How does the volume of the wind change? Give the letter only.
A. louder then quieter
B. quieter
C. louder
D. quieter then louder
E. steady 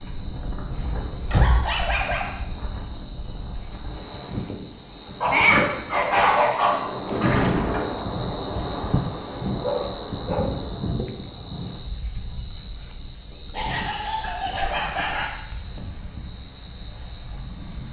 A.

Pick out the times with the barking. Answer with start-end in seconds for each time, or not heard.
1.4-2.2, 5.2-6.8, 9.6-10.4, 13.5-15.3.